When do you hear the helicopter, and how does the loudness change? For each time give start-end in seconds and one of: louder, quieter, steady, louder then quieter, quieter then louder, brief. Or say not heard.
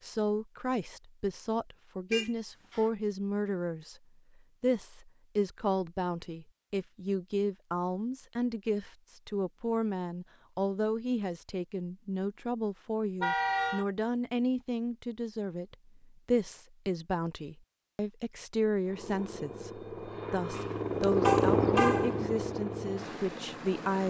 18.9-24.0 louder then quieter.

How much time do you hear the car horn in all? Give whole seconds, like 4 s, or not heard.
3 s.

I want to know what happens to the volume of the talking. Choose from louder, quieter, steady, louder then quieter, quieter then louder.
steady.